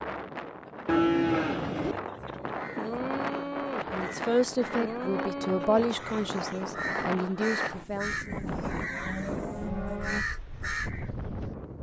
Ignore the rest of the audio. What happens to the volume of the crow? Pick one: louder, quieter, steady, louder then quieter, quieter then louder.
steady.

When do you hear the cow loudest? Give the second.
1 s.